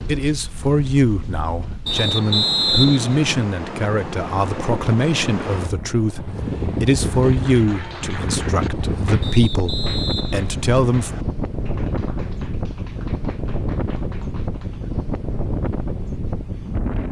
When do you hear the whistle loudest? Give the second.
3 s.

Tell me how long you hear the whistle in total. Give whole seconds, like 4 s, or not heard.
4 s.